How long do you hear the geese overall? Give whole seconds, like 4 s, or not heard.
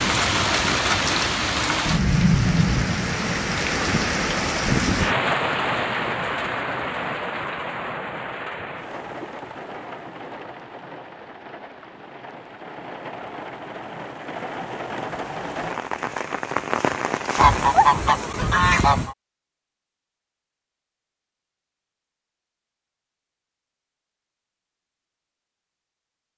2 s.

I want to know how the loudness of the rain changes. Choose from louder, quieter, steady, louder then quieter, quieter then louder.
quieter then louder.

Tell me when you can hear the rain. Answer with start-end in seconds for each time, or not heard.
0.0-17.9.